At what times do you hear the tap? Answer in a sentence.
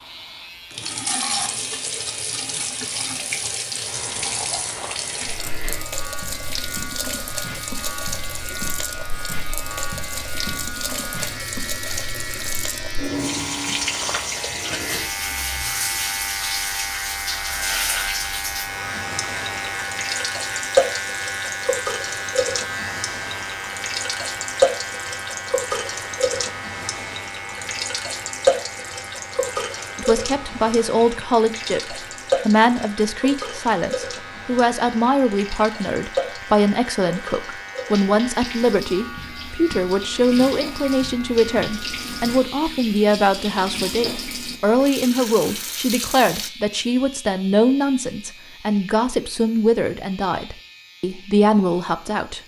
You can hear the tap from 0.0 to 46.5 s.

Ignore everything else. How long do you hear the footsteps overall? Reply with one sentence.
You can't hear the footsteps here.